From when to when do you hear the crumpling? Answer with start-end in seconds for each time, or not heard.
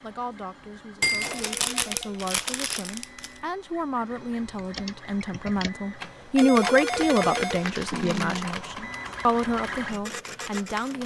1.0-3.2, 7.2-8.5.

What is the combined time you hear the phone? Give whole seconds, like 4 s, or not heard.
2 s.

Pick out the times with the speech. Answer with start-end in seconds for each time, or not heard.
0.0-11.0.